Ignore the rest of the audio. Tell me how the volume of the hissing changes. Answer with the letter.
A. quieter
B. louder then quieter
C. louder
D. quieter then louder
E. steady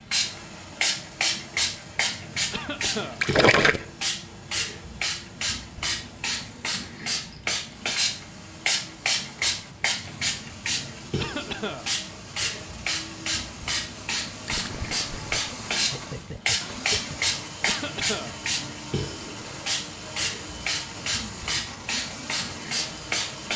E.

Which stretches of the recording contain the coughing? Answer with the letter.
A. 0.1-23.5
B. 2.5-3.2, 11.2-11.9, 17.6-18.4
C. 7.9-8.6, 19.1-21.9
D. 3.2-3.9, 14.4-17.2
B.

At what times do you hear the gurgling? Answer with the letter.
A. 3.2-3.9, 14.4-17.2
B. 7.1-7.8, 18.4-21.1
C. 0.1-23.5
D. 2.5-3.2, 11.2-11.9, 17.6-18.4
A.